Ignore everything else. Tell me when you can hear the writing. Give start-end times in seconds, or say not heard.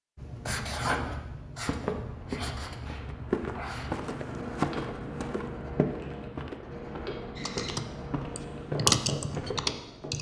0.1-10.1.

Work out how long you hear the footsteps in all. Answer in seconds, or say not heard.
8 s.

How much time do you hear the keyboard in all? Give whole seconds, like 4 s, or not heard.
3 s.